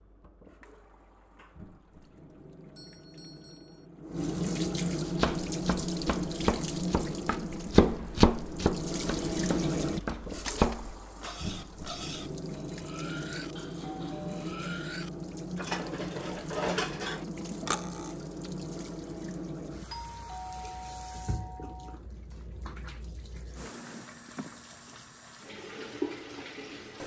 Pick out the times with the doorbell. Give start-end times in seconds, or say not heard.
2.8-3.9, 13.6-14.5, 19.9-22.0.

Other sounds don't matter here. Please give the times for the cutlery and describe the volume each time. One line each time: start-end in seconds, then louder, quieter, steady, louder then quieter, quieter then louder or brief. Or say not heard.
10.0-18.1 louder.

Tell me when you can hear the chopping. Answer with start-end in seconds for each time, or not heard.
5.1-10.9.